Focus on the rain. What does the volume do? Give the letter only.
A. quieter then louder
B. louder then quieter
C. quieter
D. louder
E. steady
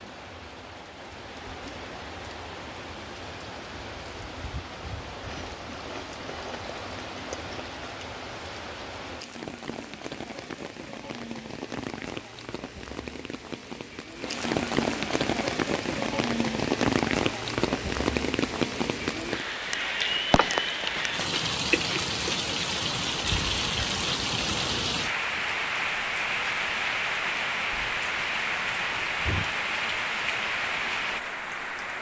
D.